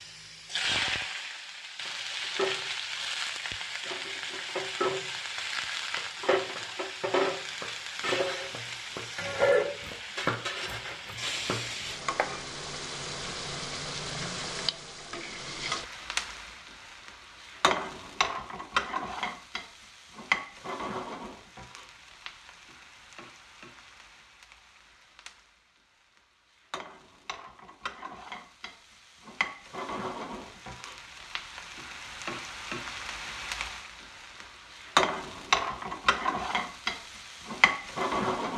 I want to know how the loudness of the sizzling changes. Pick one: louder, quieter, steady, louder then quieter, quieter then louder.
quieter then louder.